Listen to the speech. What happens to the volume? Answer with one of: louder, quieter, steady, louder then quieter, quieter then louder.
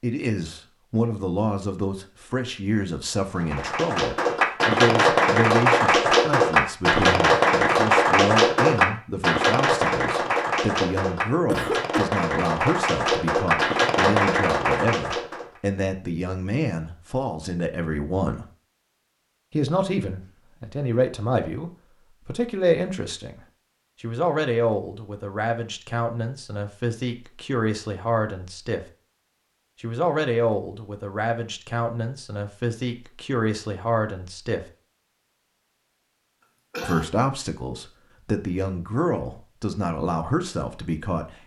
steady.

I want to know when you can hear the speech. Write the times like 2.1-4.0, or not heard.
0.0-18.4, 19.5-23.4, 24.0-28.8, 29.8-34.6, 36.8-41.4.